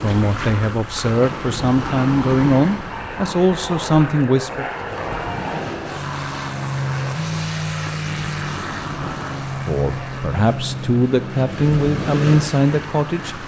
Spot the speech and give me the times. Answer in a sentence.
The speech can be heard from 0.0 to 4.7 s and from 9.7 to 13.4 s.